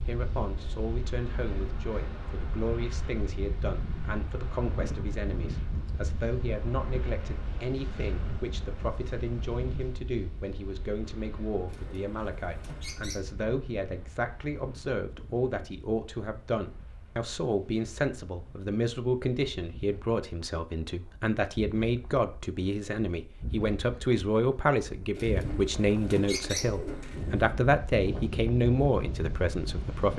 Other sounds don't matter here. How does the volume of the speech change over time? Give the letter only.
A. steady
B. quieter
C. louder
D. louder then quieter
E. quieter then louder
C.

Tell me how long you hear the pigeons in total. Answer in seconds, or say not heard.
4 s.